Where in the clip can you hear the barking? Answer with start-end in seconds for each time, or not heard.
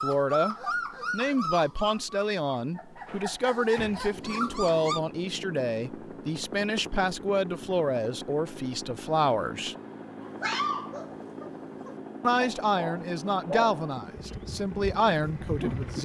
0.0-5.0, 10.2-16.0.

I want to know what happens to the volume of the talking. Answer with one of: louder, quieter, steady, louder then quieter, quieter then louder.
steady.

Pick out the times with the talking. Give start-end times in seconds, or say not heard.
0.0-9.8, 12.2-16.0.